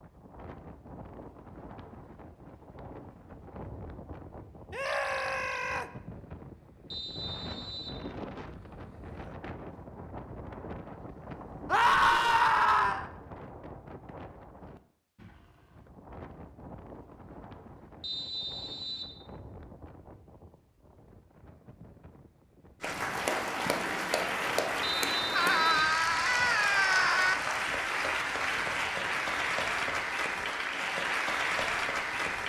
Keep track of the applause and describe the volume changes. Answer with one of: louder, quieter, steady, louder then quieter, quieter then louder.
steady.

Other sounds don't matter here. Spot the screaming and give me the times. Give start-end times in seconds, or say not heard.
4.7-5.8, 11.7-13.1, 25.4-27.4.